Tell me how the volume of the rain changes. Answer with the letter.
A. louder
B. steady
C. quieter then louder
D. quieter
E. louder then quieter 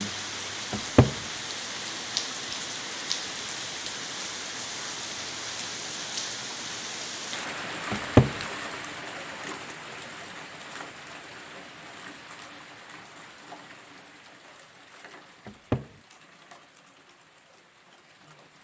D.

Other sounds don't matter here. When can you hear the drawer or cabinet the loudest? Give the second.
8 s.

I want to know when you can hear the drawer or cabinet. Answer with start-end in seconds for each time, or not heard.
0.7-1.1, 7.9-8.3, 15.4-15.9.